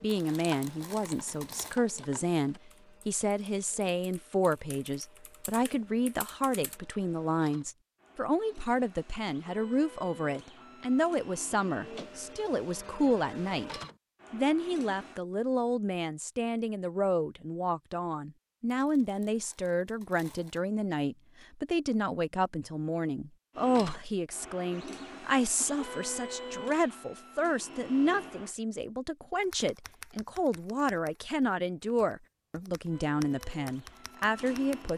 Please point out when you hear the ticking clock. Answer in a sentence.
The ticking clock can't be heard in this clip.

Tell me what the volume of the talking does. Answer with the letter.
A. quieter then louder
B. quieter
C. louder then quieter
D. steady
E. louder
D.